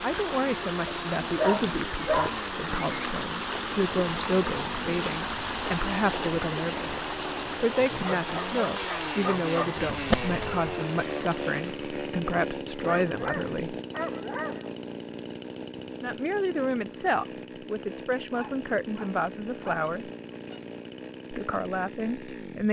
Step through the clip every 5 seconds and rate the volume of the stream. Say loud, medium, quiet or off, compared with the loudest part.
loud, loud, medium, off, off.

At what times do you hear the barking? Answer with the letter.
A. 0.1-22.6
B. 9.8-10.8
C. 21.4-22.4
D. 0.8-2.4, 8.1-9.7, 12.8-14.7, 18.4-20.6
D.